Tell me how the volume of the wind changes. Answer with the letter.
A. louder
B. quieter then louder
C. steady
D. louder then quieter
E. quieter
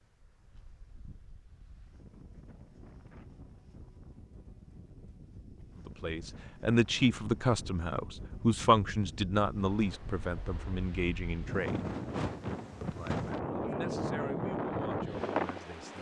A.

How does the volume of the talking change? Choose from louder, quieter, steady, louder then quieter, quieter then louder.
quieter.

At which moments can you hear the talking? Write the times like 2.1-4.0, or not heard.
5.8-11.8, 12.8-15.9.